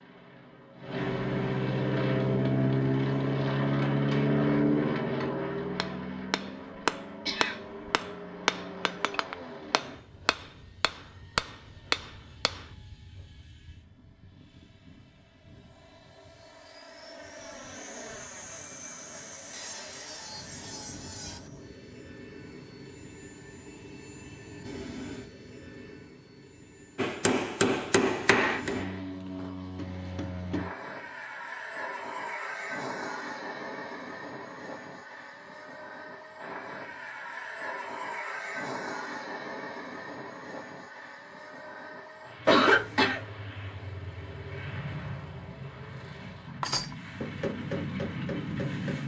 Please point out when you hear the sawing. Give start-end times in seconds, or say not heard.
19.5-21.5.